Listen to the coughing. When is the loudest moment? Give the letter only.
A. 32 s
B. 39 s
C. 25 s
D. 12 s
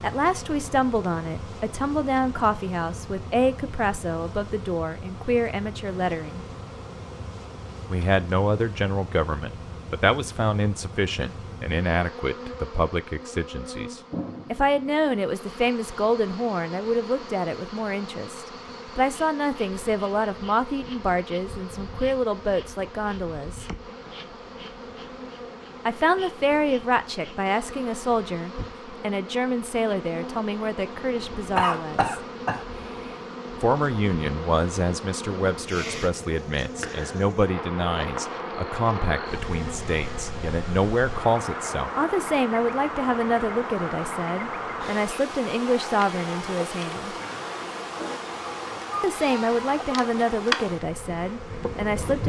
A.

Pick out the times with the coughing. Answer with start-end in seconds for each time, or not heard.
31.6-33.2.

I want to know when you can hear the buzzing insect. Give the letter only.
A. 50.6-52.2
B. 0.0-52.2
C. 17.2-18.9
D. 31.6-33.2
B.